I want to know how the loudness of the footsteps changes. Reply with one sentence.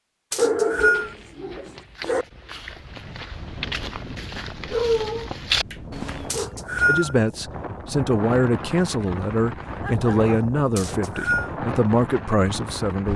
The volume of the footsteps goes up.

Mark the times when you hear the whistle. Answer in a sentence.
The whistle can be heard from 0.3 to 1.1 s, from 6.3 to 7.2 s and from 10.8 to 11.5 s.